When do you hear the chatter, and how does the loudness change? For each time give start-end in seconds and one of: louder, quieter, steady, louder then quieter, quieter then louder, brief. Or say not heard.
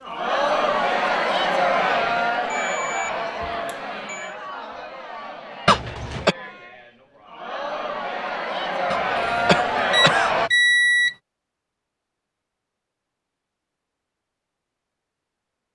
0.0-10.5 quieter then louder.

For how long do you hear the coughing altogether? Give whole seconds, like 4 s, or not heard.
2 s.